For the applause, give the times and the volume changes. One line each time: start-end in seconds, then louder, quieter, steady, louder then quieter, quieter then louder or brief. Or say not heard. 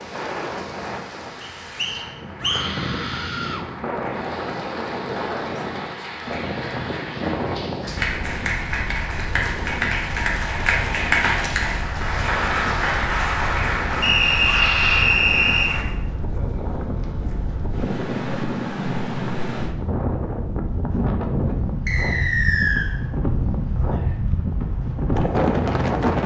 0.0-15.8 louder.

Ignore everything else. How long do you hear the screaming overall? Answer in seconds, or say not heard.
2 s.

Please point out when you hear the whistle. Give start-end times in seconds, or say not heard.
1.4-2.7, 14.0-15.7, 21.9-22.9.